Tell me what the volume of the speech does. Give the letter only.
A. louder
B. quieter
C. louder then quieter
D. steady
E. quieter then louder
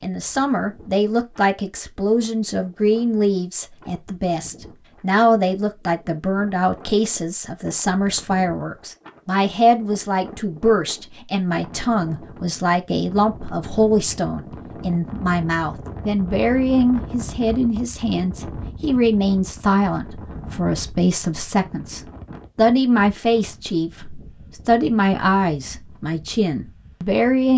D.